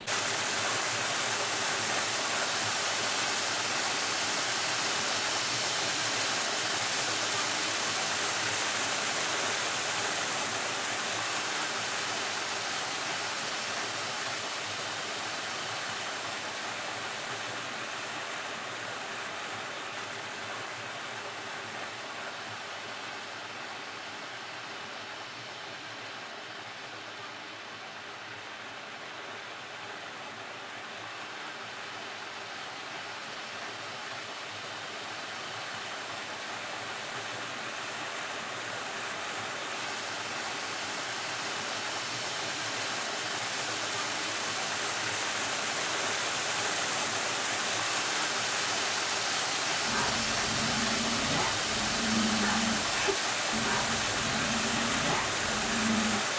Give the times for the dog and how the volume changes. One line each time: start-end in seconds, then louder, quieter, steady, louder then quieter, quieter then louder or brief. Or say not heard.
49.8-56.2 steady.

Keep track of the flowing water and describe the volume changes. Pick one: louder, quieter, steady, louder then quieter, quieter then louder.
quieter then louder.